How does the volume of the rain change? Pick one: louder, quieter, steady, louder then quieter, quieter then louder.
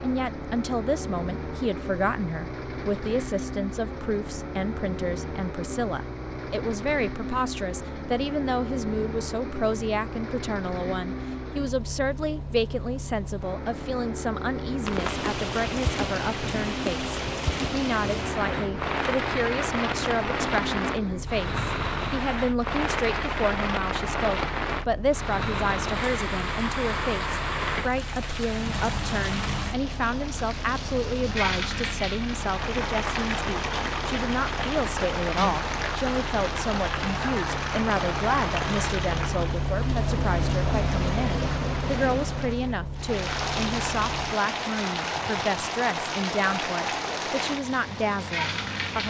steady.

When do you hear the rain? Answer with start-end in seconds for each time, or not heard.
14.8-49.0.